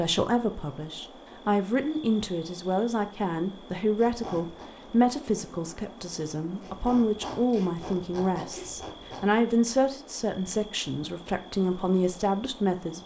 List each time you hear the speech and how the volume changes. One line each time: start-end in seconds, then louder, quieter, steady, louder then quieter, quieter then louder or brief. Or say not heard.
0.0-13.0 steady.